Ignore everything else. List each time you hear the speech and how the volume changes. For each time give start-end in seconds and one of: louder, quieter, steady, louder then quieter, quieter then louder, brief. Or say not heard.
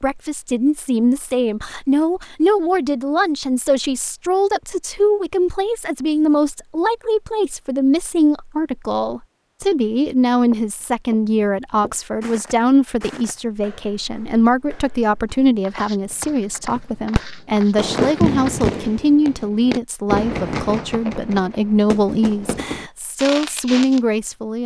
0.0-24.6 steady.